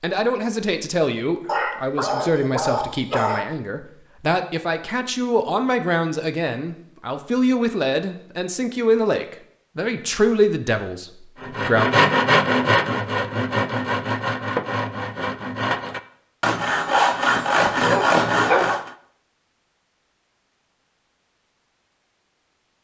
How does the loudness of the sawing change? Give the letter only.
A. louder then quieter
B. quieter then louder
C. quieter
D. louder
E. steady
B.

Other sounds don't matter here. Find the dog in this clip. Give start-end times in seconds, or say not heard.
1.4-3.5, 17.4-18.7.